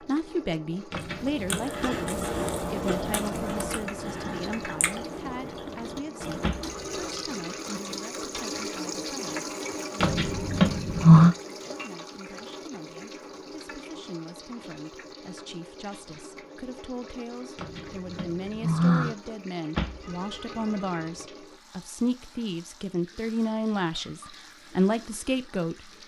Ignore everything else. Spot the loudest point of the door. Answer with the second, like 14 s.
11 s.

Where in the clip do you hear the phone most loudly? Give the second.
20 s.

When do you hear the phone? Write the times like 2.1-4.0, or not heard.
6.4-7.8, 19.8-21.2.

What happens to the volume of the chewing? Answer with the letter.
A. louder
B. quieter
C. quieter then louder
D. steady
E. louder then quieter
B.